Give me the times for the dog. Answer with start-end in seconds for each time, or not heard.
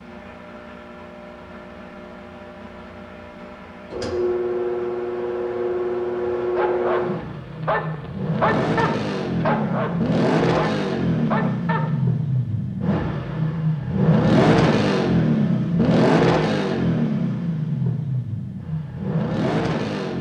6.5-11.9.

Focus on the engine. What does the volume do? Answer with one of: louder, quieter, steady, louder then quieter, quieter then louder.
louder.